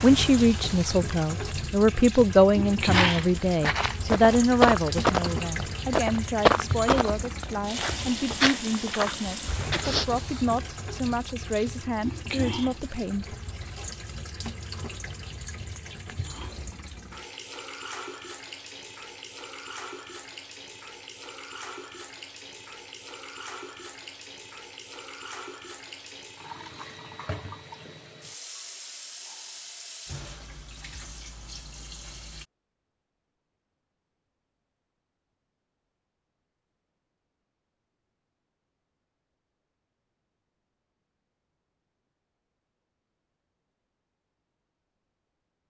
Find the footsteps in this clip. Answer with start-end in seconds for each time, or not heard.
2.8-10.1.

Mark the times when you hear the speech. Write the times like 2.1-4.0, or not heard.
0.0-13.3.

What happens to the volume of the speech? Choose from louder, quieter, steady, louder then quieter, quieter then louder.
quieter.